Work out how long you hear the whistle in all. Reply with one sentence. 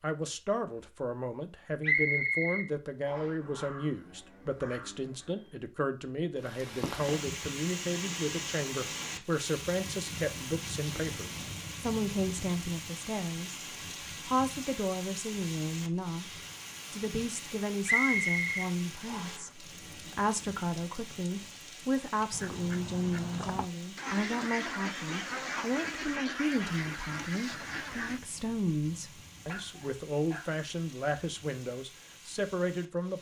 The whistle can be heard for 3 seconds in total.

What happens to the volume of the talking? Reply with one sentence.
The loudness of the talking stays about the same.